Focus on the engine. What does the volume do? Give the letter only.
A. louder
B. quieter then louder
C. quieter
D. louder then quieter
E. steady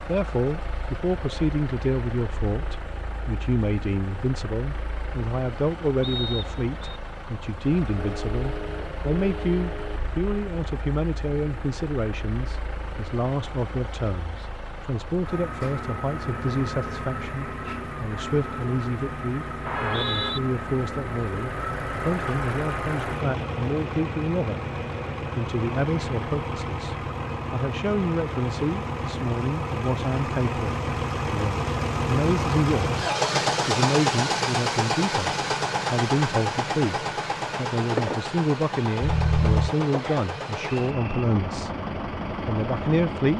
A.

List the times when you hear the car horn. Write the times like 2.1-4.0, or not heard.
8.0-10.0, 19.7-20.4, 39.0-39.8.